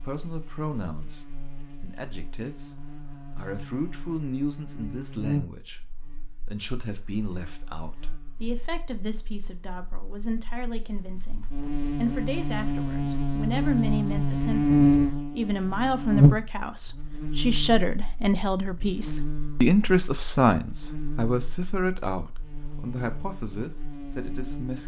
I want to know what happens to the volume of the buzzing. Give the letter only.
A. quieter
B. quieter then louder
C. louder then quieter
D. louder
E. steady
C.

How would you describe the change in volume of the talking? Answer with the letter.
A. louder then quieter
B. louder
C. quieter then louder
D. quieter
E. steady
B.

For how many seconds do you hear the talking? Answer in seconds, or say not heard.
25 s.